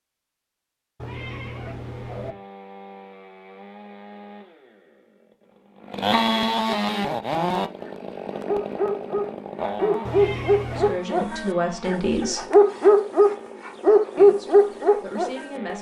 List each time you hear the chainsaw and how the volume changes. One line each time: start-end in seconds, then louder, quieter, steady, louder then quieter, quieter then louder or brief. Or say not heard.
1.8-15.7 louder then quieter.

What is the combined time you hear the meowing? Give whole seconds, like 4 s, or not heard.
2 s.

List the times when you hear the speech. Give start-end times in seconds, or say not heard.
10.6-12.4, 14.2-15.7.